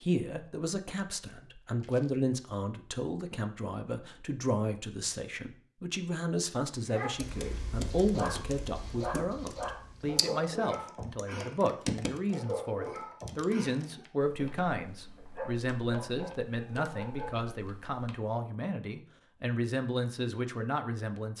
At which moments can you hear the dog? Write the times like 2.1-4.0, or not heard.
6.9-17.4.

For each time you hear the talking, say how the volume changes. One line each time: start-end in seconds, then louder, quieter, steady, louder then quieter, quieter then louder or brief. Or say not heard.
0.0-21.3 steady.